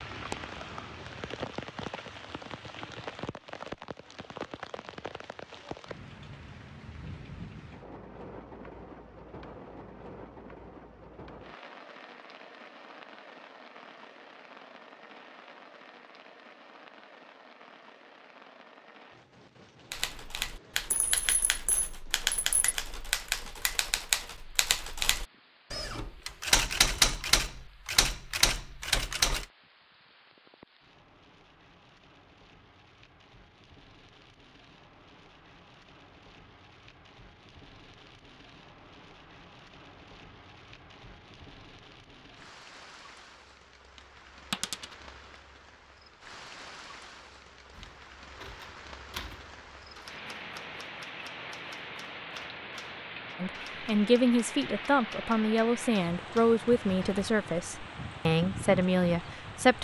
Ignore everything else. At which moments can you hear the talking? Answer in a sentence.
The talking can be heard from 53.4 to 59.8 s.